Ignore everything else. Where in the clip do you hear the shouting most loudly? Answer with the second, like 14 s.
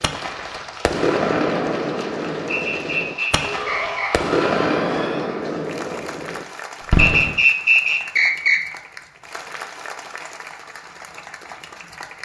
4 s.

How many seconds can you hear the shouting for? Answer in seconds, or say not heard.
2 s.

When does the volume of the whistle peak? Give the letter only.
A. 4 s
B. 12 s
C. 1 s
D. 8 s
D.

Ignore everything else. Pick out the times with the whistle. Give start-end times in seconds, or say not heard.
2.5-4.1, 7.0-8.6.